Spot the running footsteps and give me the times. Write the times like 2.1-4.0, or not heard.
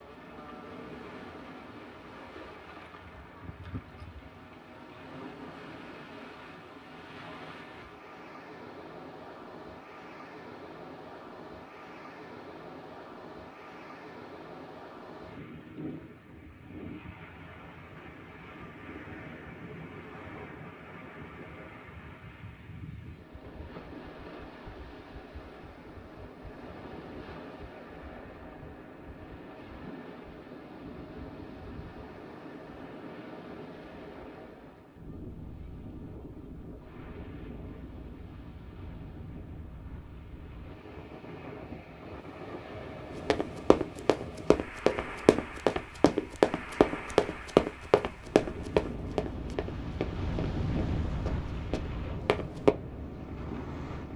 43.1-52.7.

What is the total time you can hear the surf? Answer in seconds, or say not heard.
54 s.